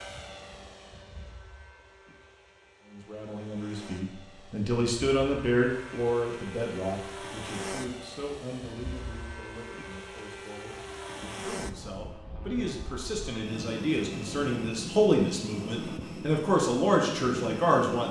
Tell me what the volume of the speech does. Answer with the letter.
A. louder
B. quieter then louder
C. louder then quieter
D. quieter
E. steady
B.